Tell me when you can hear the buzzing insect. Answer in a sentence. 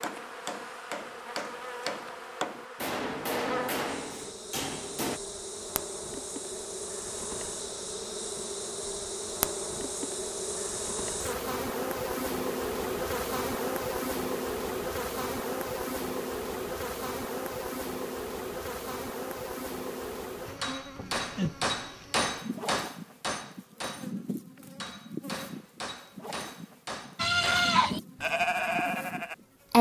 The buzzing insect can be heard from 0.0 to 29.7 s.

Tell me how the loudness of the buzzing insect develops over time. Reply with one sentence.
The volume of the buzzing insect goes up, then down.